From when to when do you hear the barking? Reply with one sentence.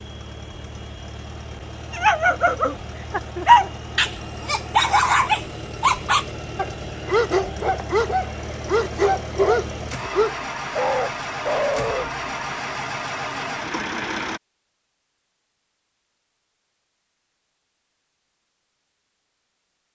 You can hear the barking from 1.9 to 12.1 s.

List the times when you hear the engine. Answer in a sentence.
The engine can be heard from 0.0 to 14.4 s.